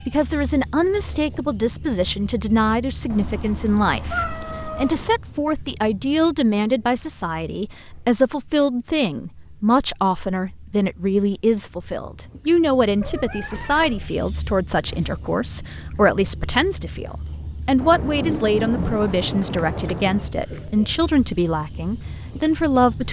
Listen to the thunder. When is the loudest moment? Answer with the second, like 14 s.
19 s.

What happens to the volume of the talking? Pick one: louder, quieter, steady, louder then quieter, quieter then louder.
steady.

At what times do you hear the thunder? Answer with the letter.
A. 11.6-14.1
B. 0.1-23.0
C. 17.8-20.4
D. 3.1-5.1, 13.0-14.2
C.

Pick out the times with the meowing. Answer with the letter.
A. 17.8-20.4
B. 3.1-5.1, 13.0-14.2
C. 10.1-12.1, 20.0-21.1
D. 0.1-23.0
B.